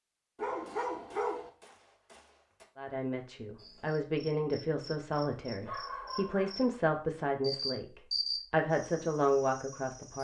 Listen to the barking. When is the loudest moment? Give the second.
1 s.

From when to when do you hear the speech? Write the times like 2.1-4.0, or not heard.
2.8-10.1.